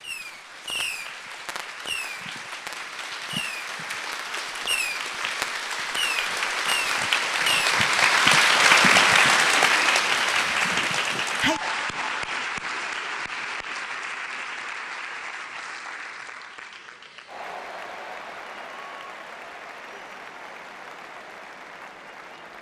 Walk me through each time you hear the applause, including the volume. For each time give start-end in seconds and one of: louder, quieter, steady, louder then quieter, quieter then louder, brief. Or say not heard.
0.0-22.5 louder then quieter.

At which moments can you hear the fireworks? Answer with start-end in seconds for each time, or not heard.
0.0-7.5.